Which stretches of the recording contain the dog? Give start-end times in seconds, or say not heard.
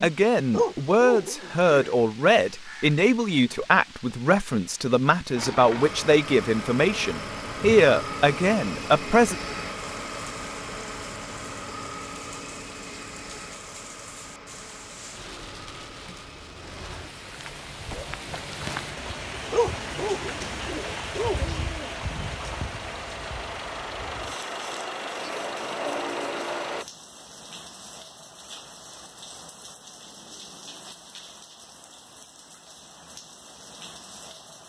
0.5-1.8, 19.5-21.9.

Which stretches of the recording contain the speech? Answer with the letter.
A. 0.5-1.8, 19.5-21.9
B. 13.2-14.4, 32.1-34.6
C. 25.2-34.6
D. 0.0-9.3
D.